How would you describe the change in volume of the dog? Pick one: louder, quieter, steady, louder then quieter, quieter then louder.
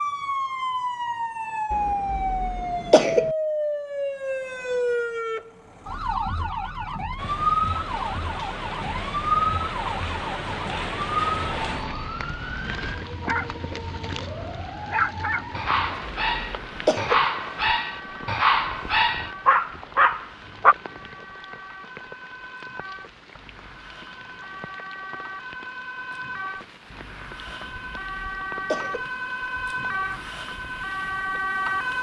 louder.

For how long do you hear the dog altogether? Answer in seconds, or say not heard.
8 s.